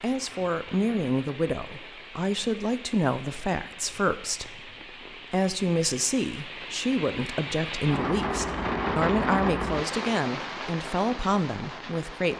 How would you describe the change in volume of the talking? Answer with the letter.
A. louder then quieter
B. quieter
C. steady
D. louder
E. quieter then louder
C.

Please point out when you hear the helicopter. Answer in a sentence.
The helicopter can't be heard in this clip.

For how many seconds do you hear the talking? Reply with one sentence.
You can hear the talking for 12 seconds altogether.